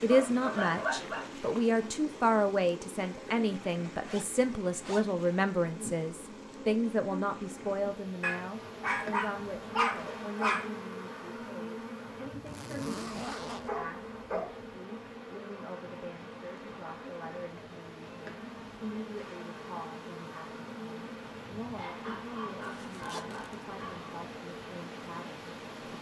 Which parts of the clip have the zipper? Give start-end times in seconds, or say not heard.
4.0-5.2, 12.4-13.8, 22.8-23.6.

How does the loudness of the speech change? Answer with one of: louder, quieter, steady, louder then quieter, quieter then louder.
quieter.